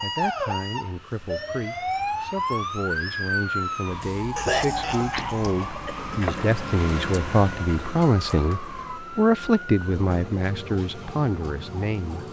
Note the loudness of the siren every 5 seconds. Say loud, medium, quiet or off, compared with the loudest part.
loud, medium, medium.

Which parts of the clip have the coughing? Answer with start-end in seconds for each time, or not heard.
4.3-6.2.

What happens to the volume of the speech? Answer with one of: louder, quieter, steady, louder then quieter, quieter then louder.
louder.